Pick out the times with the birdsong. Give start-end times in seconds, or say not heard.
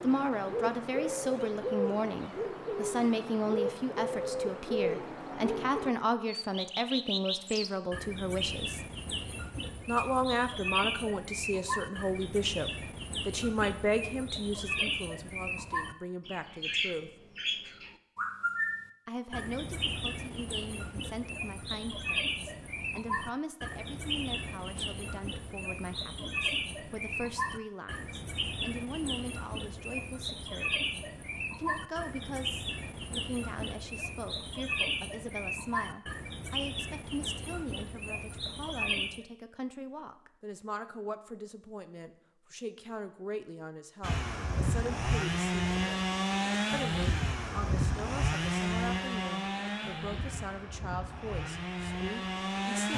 0.0-39.2.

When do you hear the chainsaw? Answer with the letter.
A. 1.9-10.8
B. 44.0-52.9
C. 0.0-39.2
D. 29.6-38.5
B.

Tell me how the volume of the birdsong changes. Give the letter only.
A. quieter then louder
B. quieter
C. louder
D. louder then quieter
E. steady
E.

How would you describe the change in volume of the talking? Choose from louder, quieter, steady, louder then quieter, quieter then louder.
quieter.